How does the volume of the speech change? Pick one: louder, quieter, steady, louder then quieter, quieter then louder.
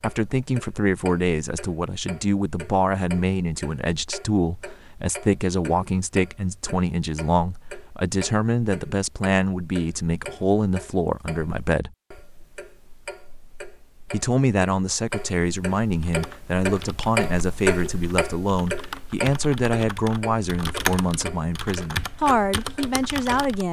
steady.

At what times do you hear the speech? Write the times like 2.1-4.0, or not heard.
0.0-11.9, 14.1-23.6.